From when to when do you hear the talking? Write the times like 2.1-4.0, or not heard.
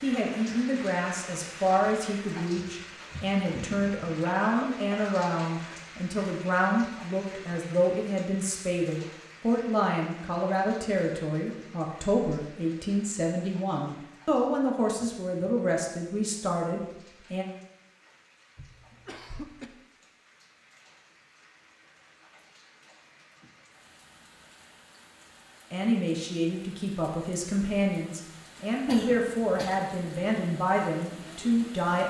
0.0-17.4, 25.7-32.0.